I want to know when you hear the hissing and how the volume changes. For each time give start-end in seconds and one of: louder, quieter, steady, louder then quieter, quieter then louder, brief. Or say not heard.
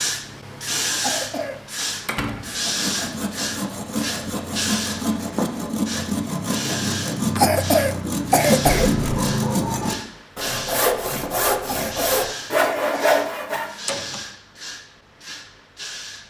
0.0-16.2 quieter.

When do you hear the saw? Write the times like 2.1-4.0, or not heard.
2.4-13.7.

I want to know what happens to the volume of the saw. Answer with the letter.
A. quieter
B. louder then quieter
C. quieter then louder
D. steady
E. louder
E.